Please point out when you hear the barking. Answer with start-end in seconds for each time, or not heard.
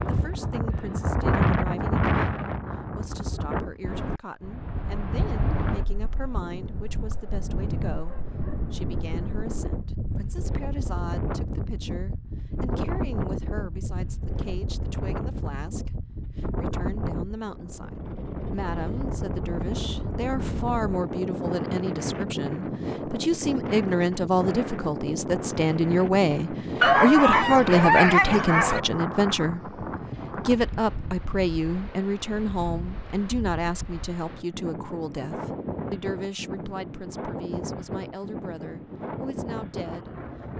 26.8-28.8.